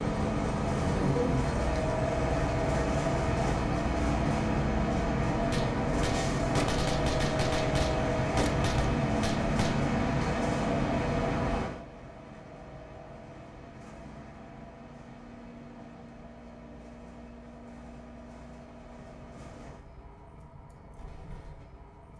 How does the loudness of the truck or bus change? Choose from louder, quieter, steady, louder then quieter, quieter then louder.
quieter.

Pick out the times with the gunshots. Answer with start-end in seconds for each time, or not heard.
5.5-9.8.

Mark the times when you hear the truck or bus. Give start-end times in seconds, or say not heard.
0.0-22.1.